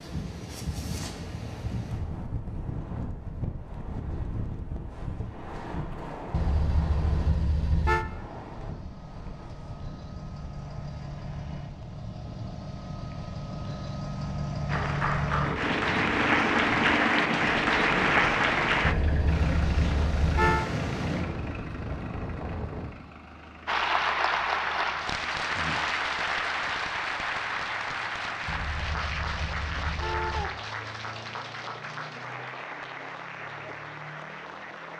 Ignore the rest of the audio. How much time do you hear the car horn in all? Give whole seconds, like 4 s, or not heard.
6 s.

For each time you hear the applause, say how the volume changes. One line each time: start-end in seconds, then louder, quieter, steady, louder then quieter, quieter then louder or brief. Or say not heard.
14.7-18.9 louder
23.6-34.9 quieter.